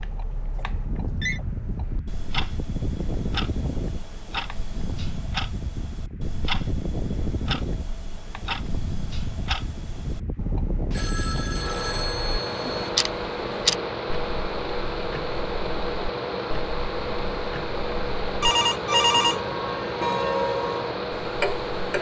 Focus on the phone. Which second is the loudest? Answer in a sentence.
The loudest moment of the phone is at 19 seconds.